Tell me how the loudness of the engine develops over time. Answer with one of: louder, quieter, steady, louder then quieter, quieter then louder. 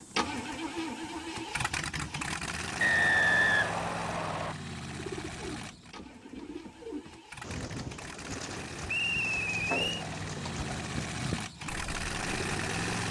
quieter then louder.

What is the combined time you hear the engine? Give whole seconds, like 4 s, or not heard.
13 s.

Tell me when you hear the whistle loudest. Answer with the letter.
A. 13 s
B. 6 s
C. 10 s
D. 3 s
D.